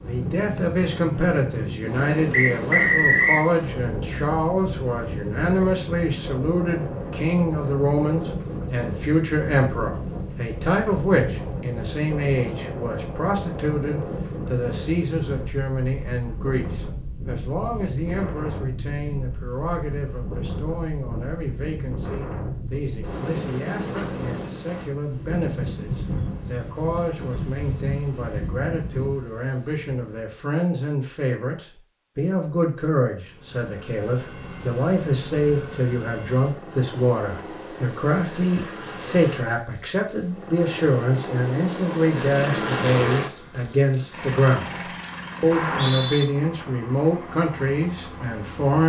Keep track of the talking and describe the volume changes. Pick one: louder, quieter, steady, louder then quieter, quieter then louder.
quieter then louder.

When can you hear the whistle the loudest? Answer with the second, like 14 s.
3 s.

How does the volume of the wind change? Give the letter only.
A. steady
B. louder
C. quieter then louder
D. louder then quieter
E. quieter
A.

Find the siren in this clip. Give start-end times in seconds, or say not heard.
not heard.